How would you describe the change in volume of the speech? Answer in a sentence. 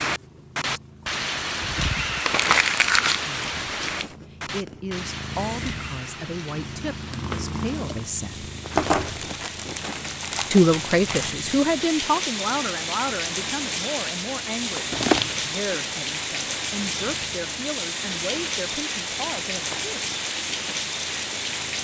The loudness of the speech goes up, then down.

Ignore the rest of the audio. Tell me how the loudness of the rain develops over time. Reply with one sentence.
The loudness of the rain goes down, then up.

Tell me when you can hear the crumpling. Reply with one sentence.
You can hear the crumpling from 2.2 to 4.0 s, from 8.8 to 11.3 s and from 14.9 to 15.5 s.